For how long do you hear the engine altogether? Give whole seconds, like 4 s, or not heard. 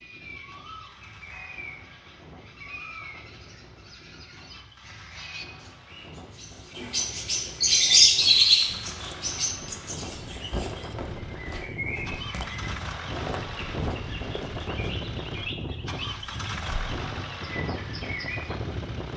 19 s.